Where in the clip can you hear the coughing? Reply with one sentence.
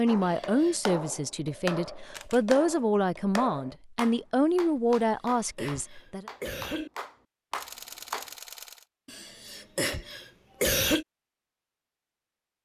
You can hear the coughing from 0.2 to 0.8 s, from 5.0 to 6.9 s and from 9.1 to 11.1 s.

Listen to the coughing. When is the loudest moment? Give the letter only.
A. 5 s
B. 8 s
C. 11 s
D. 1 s
C.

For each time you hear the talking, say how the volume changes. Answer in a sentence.
You can hear the talking from 0.0 to 6.2 s, at a steady volume.